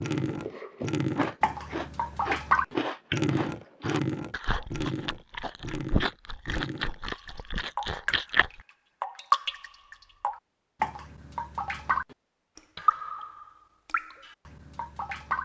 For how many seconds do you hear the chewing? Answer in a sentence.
The chewing can be heard for 8 seconds in total.